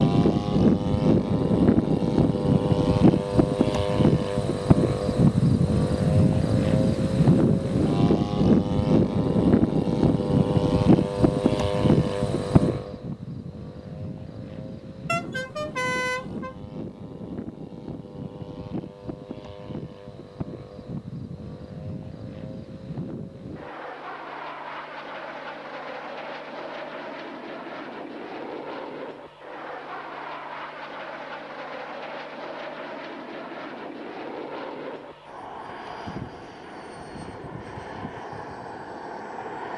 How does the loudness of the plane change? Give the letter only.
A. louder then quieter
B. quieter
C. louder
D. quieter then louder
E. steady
B.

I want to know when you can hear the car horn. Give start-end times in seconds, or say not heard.
15.1-16.6.